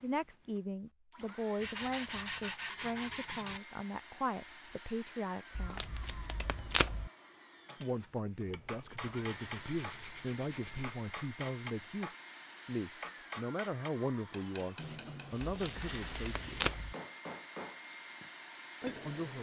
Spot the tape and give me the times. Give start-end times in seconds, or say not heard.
5.5-7.1, 15.4-16.9.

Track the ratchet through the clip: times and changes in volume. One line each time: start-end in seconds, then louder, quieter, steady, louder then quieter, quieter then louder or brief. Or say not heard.
not heard.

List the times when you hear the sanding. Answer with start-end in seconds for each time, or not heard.
1.6-3.6, 8.4-10.9, 14.8-16.8.